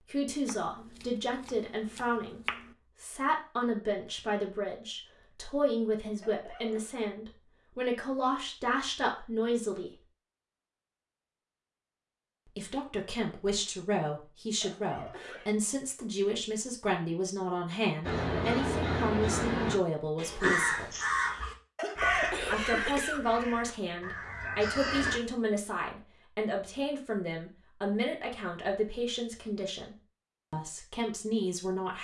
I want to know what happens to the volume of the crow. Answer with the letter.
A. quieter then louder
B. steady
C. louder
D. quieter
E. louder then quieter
D.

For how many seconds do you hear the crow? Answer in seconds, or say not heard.
7 s.